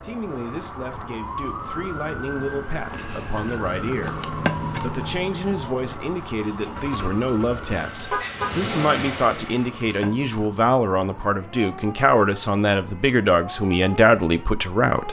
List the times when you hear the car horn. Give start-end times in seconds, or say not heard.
8.1-8.5.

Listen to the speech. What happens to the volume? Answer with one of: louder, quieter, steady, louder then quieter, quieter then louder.
louder.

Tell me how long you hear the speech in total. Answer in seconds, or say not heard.
15 s.